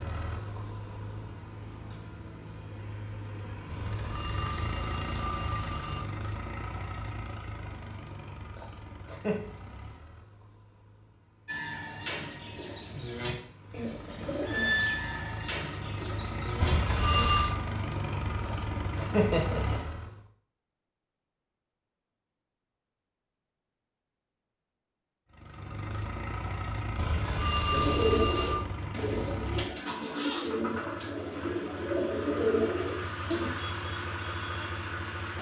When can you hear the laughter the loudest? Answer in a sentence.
The volume of the laughter peaks at 19 seconds.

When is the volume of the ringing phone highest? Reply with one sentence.
The volume of the ringing phone peaks at 28 seconds.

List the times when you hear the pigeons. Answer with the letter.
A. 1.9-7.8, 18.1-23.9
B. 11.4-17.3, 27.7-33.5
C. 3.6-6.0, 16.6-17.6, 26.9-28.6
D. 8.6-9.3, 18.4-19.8
B.